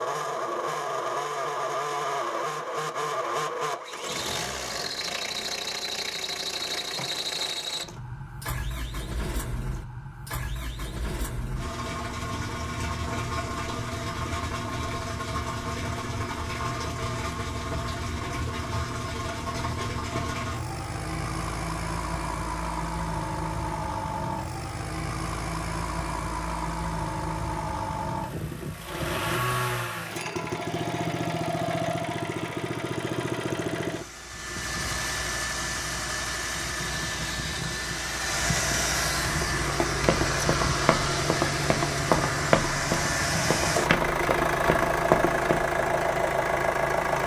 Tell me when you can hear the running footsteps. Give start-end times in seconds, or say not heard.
39.2-45.6.